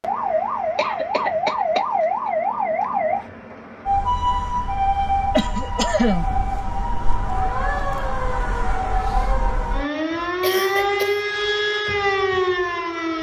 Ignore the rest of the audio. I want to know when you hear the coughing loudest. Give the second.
6 s.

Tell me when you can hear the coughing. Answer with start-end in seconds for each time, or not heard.
0.8-2.3, 5.3-6.3, 10.4-11.2.